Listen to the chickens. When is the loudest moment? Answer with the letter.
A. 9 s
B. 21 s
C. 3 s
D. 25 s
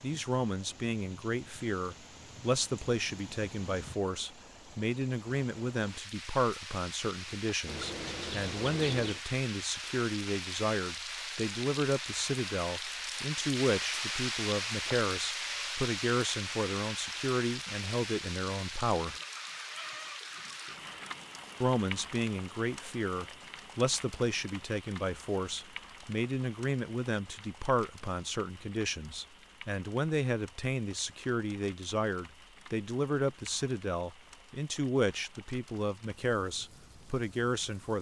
A.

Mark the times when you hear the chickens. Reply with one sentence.
You can hear the chickens from 7.7 to 9.2 s and from 19.1 to 21.1 s.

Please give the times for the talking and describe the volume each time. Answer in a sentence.
You can hear the talking from 0.0 to 19.1 s, at a steady volume; and from 21.6 to 37.9 s, at a steady volume.